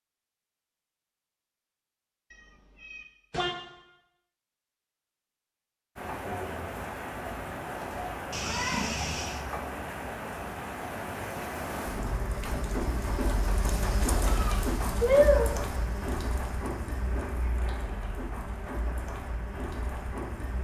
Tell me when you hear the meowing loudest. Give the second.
15 s.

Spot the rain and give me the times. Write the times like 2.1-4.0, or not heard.
6.0-20.6.